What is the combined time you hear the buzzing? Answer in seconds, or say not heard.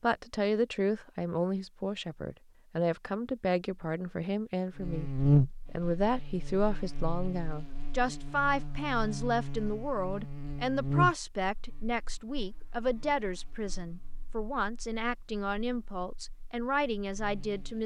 13 s.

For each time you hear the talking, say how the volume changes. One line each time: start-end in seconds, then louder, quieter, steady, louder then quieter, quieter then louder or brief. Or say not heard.
0.0-17.8 steady.